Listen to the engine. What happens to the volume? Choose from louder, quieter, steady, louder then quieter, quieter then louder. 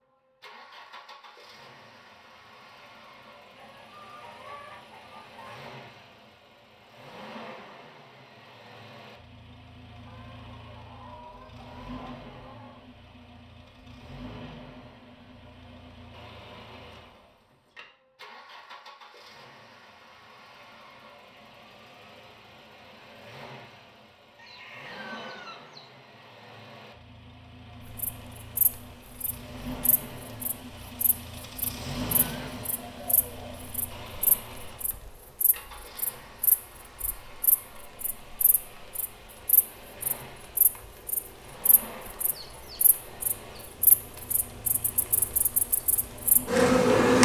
louder then quieter.